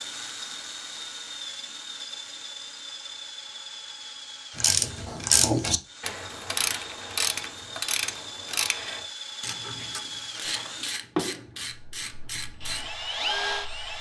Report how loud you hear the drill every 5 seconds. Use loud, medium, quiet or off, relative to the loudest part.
medium, medium, loud.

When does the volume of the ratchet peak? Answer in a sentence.
The volume of the ratchet peaks at 5 seconds.